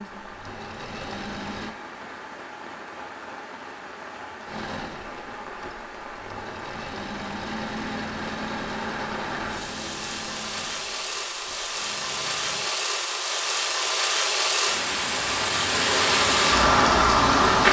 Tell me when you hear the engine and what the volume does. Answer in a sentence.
You can hear the engine briefly from 0.2 to 1.8 s; and from 4.5 to 12.7 s, getting louder then quieter.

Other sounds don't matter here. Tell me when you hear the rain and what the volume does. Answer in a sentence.
You can hear the rain from 0.0 to 17.6 s, getting louder.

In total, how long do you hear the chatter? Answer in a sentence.
The chatter can't be heard in this clip.